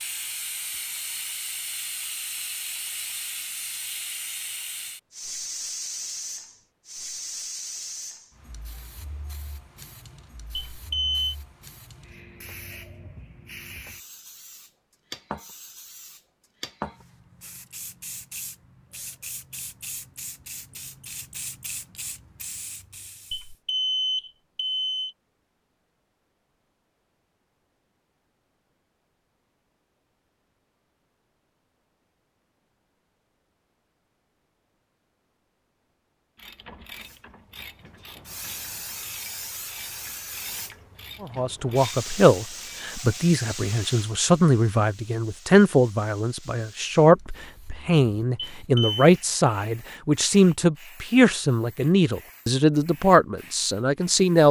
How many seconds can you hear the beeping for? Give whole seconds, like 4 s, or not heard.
3 s.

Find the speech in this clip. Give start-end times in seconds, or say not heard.
41.2-54.4.